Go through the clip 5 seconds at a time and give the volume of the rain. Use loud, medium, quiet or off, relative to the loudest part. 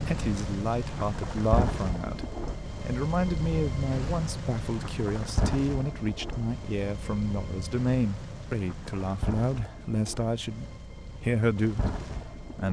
loud, loud, medium.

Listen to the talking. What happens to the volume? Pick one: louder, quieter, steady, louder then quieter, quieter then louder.
steady.